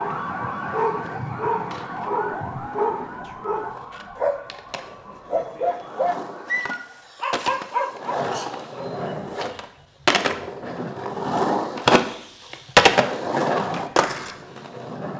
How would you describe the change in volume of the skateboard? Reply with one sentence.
The loudness of the skateboard goes up.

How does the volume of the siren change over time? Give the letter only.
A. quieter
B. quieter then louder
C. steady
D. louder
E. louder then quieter
A.